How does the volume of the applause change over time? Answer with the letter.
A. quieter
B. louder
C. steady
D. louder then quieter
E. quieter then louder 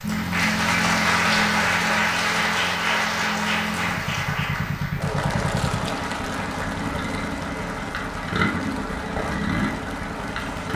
A.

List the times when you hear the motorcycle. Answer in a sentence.
You can hear the motorcycle from 0.0 to 10.7 s.